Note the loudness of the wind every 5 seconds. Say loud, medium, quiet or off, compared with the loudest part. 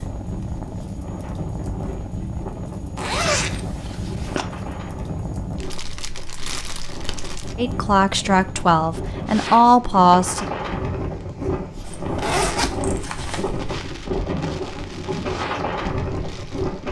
quiet, medium, loud, loud.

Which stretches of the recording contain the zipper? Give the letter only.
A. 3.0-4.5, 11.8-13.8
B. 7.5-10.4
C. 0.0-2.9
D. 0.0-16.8
A.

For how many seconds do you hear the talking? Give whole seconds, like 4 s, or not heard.
3 s.